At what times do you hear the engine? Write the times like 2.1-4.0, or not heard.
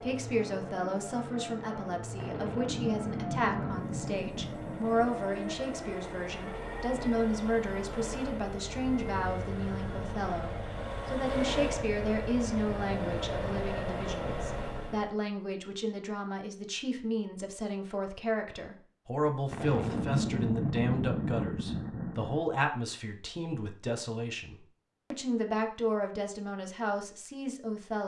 0.0-15.2.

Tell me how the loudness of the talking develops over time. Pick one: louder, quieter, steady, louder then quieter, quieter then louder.
steady.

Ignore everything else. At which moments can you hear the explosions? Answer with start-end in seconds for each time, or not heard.
2.1-5.1, 19.5-22.4.